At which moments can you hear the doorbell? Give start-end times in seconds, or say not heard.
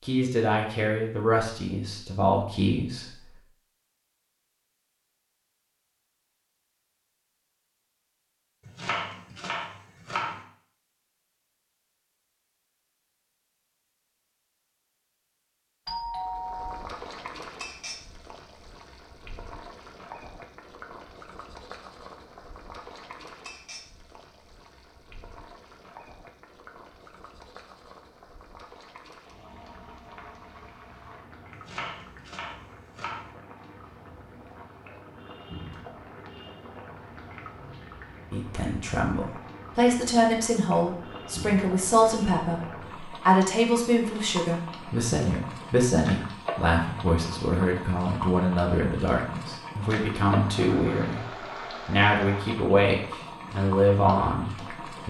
15.8-16.9.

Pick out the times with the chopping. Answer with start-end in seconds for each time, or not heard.
8.7-10.4, 31.5-33.3.